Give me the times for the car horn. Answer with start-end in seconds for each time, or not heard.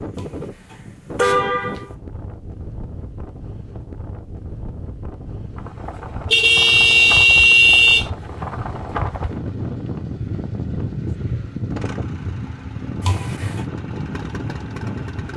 0.1-1.8, 6.3-8.1, 13.0-13.7.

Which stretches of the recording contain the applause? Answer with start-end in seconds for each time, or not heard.
not heard.